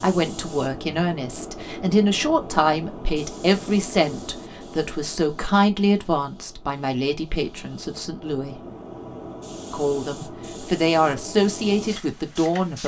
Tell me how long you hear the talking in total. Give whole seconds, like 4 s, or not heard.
12 s.